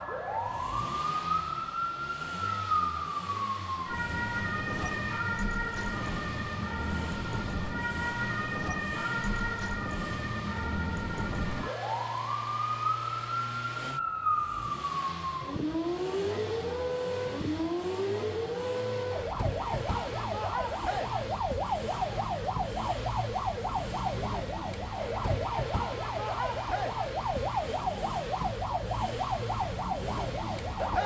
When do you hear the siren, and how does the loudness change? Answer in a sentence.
The siren can be heard from 0.0 to 31.0 s, at a steady volume.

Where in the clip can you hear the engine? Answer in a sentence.
You can hear the engine from 0.0 to 31.0 s.